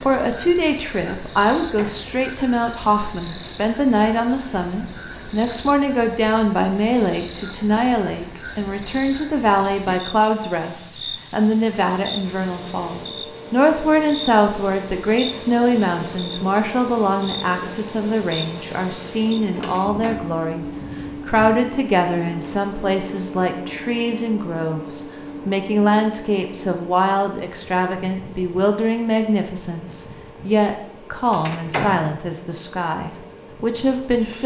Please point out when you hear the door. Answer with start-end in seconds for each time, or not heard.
1.6-2.1, 19.7-20.4, 31.4-32.1.